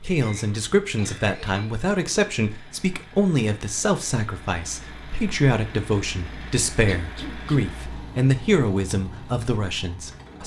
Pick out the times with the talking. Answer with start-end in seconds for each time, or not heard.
0.0-10.4.